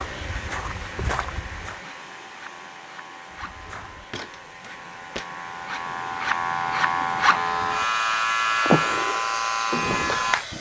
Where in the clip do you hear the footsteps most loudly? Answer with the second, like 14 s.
1 s.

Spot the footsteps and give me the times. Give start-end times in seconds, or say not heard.
0.0-1.8, 3.3-5.3.